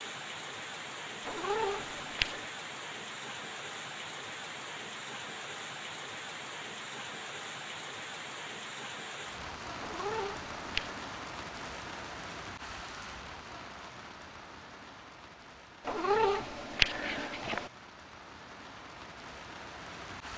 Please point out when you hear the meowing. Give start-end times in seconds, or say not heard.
1.2-2.5, 9.8-10.9, 15.8-17.7.